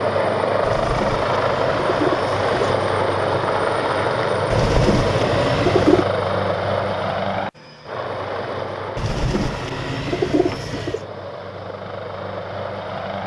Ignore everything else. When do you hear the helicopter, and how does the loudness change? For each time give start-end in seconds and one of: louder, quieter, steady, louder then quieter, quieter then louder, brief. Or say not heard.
0.0-13.2 quieter.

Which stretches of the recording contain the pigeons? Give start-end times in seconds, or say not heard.
0.6-2.8, 4.5-6.0, 8.9-11.0.